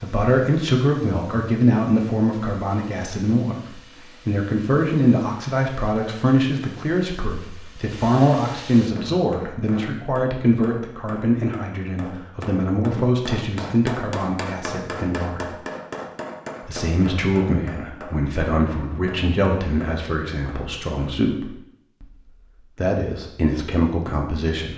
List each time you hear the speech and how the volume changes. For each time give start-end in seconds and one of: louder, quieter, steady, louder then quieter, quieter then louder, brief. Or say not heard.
0.0-15.5 steady
16.6-24.7 quieter then louder.